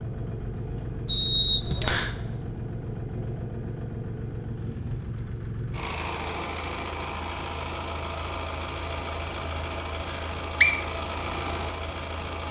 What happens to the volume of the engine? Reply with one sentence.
The loudness of the engine stays about the same.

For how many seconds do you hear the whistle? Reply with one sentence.
The whistle can be heard for 2 seconds in total.